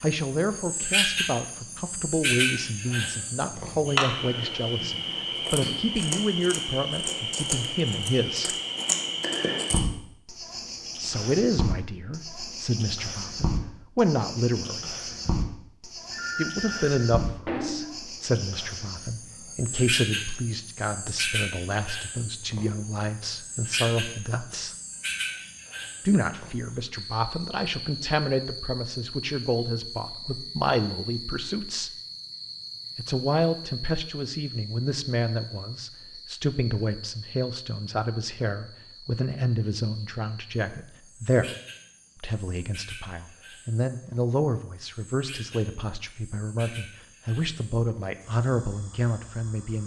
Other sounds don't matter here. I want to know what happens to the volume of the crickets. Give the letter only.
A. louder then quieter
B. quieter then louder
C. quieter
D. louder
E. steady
C.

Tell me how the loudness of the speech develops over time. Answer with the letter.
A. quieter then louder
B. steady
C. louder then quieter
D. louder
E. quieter
B.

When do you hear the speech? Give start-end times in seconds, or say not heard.
0.0-8.6, 10.9-14.9, 16.4-24.8, 26.1-31.9, 33.0-41.5, 42.2-49.8.